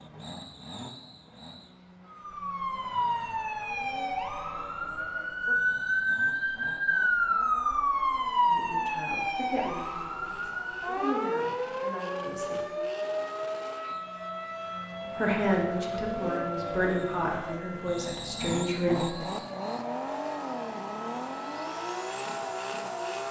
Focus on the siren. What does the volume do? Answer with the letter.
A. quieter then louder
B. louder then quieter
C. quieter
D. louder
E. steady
C.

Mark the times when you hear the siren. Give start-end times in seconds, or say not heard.
2.0-23.2.